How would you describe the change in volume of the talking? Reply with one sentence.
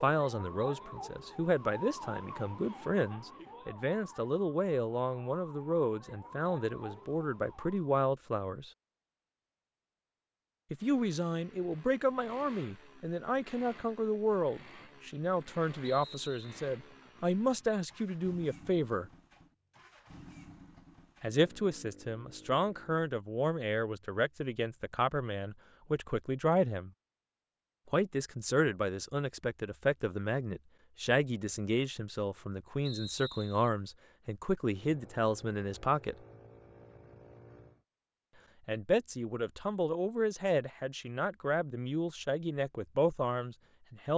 The volume of the talking stays about the same.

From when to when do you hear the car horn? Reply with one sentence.
The car horn can't be heard in this clip.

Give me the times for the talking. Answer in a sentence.
You can hear the talking from 0.0 to 8.7 s, from 10.7 to 19.1 s, from 21.2 to 26.9 s, from 27.9 to 36.1 s and from 38.6 to 44.1 s.